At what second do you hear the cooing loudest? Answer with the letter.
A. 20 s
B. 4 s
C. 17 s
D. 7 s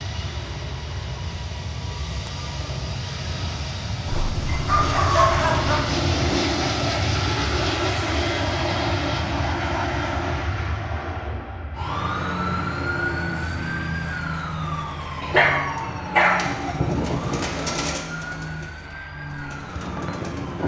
C.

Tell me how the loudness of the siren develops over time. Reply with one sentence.
The loudness of the siren goes down.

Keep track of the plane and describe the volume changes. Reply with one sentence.
The loudness of the plane goes up, then down.